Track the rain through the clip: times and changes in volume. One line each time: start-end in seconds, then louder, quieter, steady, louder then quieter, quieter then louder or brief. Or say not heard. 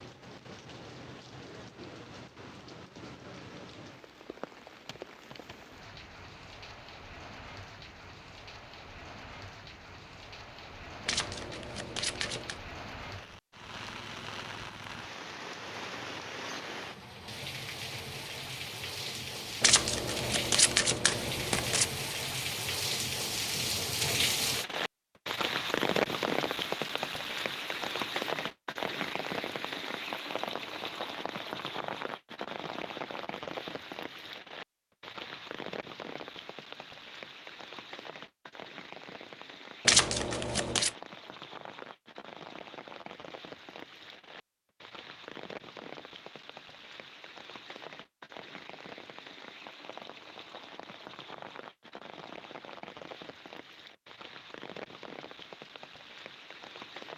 0.0-57.1 louder then quieter.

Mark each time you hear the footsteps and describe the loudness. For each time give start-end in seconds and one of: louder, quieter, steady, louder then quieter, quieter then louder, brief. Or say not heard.
not heard.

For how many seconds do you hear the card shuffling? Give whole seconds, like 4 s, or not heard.
5 s.